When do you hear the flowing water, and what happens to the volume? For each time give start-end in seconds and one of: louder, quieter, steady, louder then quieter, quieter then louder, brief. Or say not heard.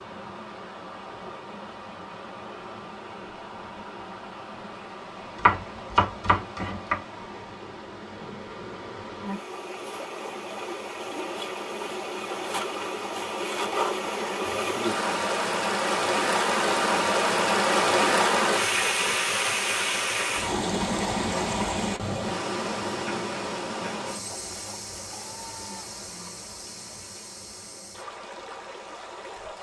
0.0-29.5 louder then quieter.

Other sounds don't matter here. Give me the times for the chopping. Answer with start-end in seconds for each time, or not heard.
5.3-7.0.